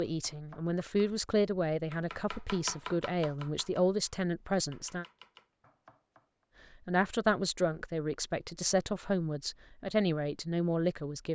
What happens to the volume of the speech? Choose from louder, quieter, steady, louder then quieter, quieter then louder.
steady.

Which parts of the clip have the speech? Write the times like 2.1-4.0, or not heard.
0.0-5.0, 6.8-11.3.